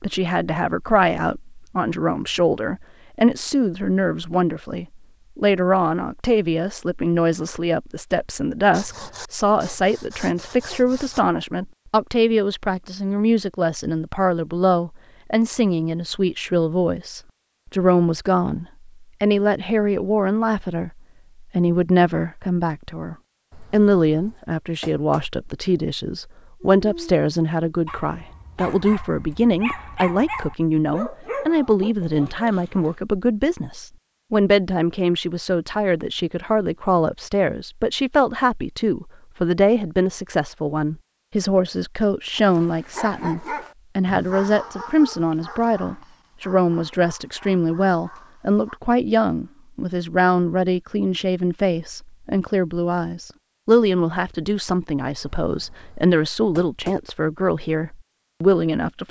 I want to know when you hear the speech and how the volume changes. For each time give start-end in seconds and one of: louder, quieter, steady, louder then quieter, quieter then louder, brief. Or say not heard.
0.0-59.0 steady.